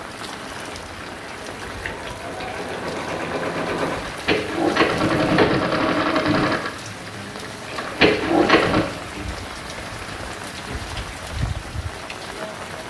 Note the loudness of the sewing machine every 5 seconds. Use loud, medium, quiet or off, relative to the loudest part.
medium, loud, off.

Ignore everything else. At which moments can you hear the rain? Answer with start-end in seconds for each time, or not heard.
0.0-12.8.